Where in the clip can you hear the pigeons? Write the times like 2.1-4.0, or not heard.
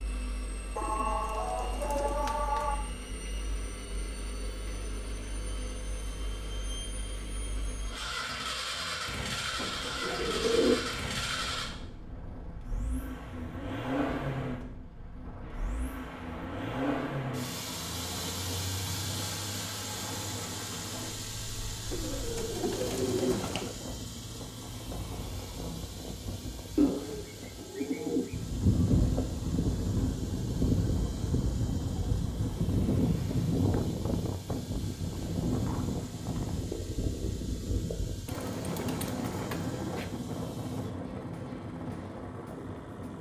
0.8-2.8, 9.6-10.8, 21.9-23.8, 26.8-28.4, 38.2-40.0.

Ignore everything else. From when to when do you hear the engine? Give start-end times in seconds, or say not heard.
0.0-43.1.